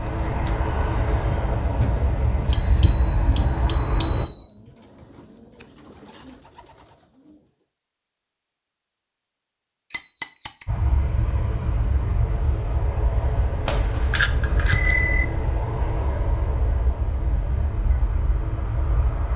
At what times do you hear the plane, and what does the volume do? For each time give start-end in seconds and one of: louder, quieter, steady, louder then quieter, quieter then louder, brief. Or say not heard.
0.0-4.2 steady
10.7-19.3 steady.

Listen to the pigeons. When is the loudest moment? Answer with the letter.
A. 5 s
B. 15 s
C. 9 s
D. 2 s
D.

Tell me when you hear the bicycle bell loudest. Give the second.
15 s.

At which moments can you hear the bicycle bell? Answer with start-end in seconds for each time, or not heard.
2.5-4.5, 9.9-10.7, 13.7-15.2.